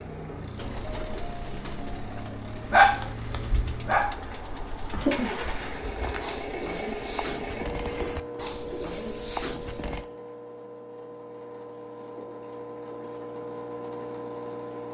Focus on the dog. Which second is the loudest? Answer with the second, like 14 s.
3 s.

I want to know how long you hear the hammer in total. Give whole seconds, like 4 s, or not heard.
not heard.